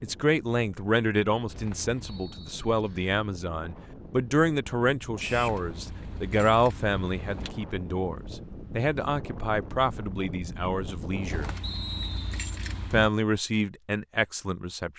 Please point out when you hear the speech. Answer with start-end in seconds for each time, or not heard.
0.0-11.5, 12.9-14.9.